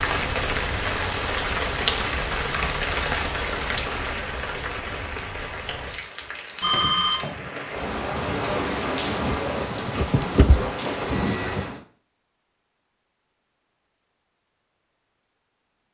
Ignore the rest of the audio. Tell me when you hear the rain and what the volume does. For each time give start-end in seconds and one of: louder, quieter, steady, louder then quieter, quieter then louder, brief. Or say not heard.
0.0-11.8 quieter then louder.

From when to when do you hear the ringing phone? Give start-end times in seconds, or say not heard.
6.6-7.3.